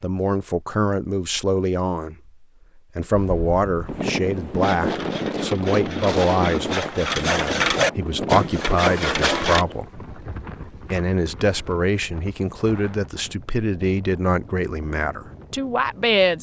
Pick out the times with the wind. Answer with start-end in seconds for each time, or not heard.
3.1-16.3.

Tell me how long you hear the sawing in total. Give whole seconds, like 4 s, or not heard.
5 s.